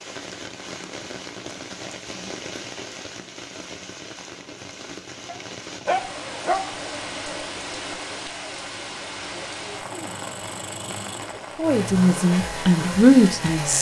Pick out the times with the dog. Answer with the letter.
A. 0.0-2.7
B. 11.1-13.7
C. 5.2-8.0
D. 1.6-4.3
C.